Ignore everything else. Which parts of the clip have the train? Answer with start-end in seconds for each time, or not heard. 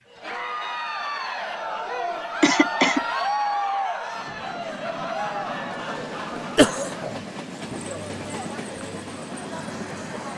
4.1-10.3.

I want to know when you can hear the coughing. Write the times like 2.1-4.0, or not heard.
2.4-3.0, 5.8-7.2.